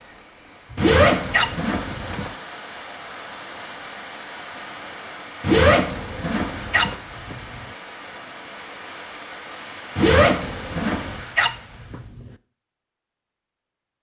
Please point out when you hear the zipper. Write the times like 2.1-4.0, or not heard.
0.8-2.3, 5.4-7.0, 9.9-11.2.